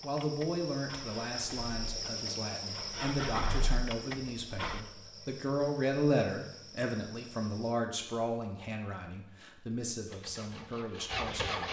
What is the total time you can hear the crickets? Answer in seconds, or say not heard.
8 s.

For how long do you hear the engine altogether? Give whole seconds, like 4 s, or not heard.
6 s.